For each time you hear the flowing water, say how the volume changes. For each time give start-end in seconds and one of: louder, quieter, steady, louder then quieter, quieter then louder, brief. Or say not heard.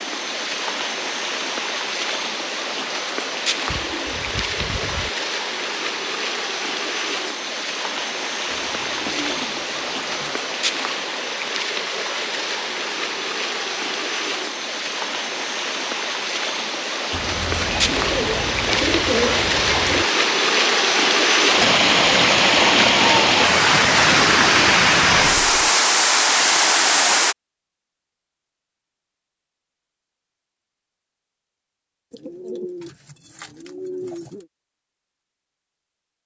0.0-27.4 louder.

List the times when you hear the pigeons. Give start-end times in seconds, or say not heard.
3.6-5.1, 8.5-10.4, 17.1-20.1, 24.3-25.8, 32.1-34.5.